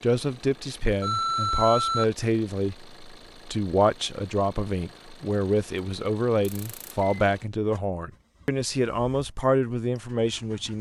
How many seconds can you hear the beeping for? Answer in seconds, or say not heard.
2 s.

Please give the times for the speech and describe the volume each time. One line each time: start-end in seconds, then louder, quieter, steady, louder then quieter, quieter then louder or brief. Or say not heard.
0.0-10.7 steady.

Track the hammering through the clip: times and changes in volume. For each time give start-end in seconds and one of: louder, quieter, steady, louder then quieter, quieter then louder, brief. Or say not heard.
not heard.